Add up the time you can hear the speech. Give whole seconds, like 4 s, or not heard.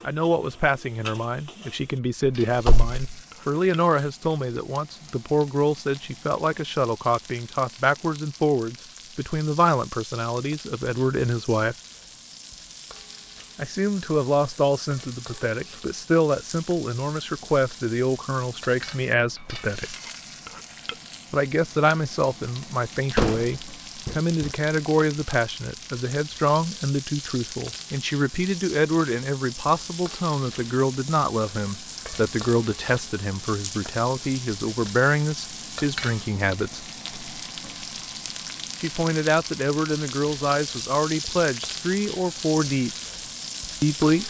38 s.